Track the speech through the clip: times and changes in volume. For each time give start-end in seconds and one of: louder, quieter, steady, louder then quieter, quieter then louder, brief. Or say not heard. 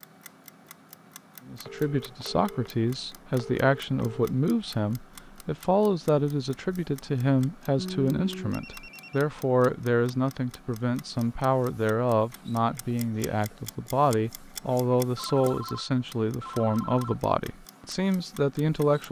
1.4-19.0 steady.